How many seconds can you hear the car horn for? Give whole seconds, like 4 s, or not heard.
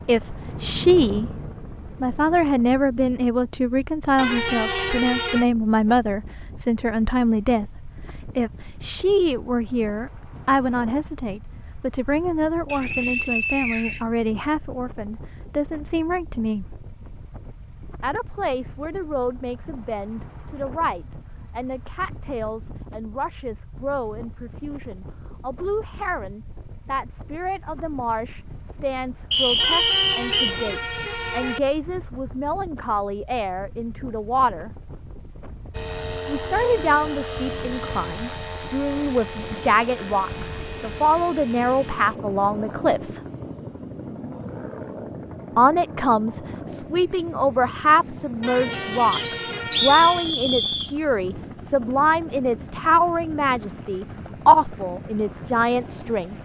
5 s.